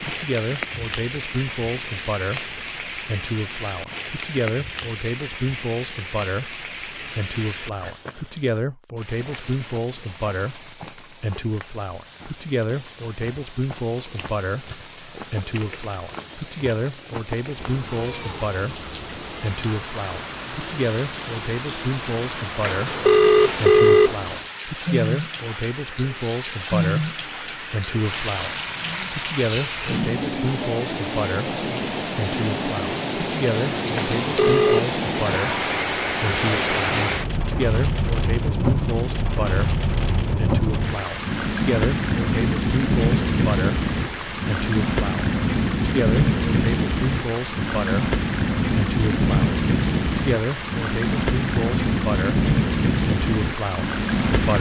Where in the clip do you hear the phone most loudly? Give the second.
24 s.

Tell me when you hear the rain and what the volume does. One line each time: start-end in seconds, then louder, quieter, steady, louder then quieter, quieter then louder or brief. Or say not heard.
0.0-54.5 louder.